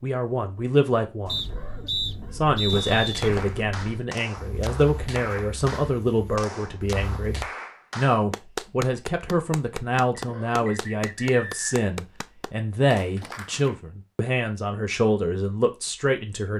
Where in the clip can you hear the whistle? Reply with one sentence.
You can hear the whistle from 1.2 to 3.3 s and from 10.2 to 11.8 s.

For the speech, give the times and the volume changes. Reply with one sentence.
The speech can be heard briefly from 0.0 to 1.5 s; and from 2.3 to 16.5 s, at a steady volume.